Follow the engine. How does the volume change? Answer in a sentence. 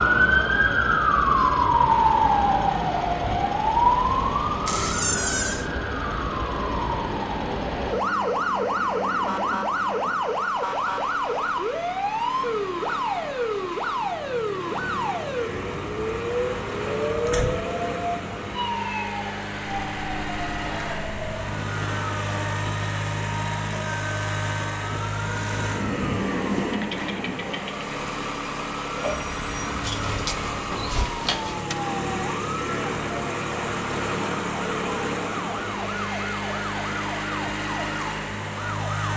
The loudness of the engine goes up.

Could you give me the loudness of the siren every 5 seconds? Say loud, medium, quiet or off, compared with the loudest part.
loud, medium, medium, medium, quiet, quiet, quiet, quiet.